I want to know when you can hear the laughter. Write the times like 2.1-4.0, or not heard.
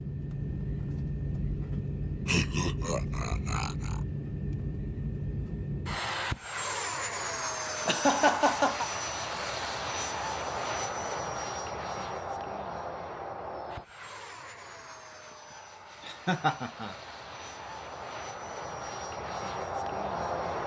2.2-4.0, 7.8-8.9, 16.1-16.9.